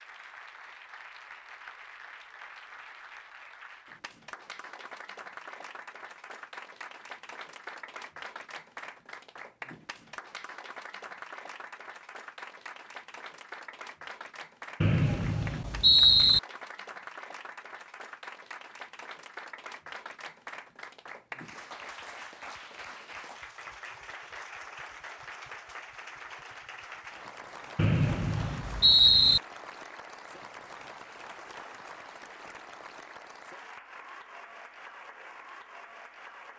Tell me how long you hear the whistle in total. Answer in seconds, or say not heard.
3 s.